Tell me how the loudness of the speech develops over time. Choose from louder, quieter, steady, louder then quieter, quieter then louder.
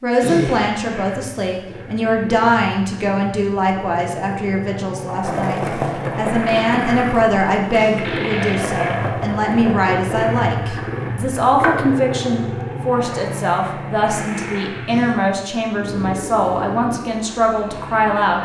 steady.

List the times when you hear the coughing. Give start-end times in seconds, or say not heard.
0.2-0.7, 7.8-8.2, 14.8-15.3.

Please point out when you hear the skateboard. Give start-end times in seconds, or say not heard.
5.2-12.4.